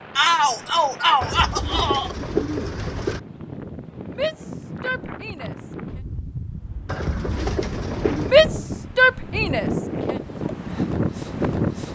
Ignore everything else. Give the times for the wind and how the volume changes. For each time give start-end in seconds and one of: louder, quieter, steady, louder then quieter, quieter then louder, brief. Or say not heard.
0.0-11.9 louder.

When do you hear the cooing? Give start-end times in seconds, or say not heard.
1.2-3.2, 6.8-8.4.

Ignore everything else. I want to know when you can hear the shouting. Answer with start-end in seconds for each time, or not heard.
0.1-2.1, 4.1-6.0, 8.2-10.2.